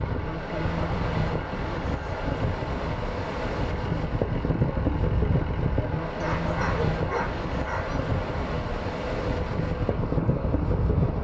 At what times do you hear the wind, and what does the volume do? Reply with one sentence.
You can hear the wind from 0.0 to 11.1 s, at a steady volume.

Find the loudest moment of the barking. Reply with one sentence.
The volume of the barking peaks at 7 seconds.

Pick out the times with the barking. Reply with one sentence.
You can hear the barking from 6.2 to 8.0 s.